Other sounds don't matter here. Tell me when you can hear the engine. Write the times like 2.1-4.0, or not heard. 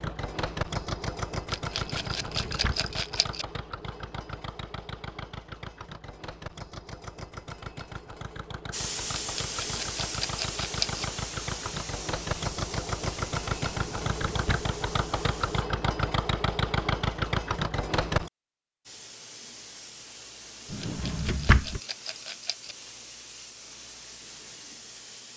0.0-18.3.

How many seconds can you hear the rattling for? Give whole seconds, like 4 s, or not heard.
6 s.